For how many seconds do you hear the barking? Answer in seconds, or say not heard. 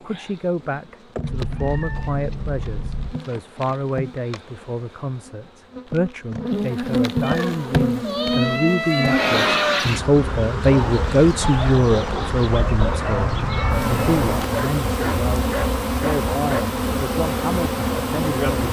6 s.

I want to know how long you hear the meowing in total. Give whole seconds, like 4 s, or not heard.
6 s.